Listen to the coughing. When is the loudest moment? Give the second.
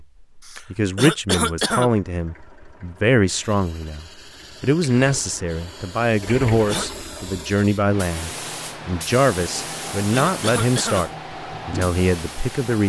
1 s.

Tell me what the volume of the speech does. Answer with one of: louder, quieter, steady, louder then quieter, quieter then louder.
steady.